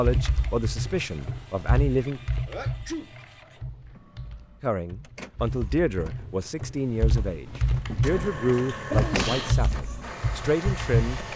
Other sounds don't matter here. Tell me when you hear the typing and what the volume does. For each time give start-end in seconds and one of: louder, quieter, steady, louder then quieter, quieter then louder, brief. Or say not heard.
0.0-11.3 quieter then louder.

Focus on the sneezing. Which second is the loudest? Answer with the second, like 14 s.
9 s.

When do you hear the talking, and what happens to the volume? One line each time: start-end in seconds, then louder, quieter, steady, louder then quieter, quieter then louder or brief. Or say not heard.
0.0-2.2 brief
4.6-11.2 steady.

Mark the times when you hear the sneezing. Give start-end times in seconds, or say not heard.
2.5-3.1, 7.5-9.6.